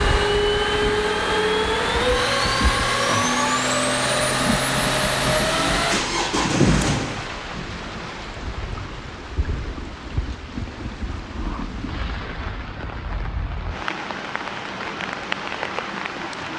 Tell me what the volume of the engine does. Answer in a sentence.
The volume of the engine stays about the same.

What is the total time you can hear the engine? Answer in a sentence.
The engine can be heard for 7 seconds in total.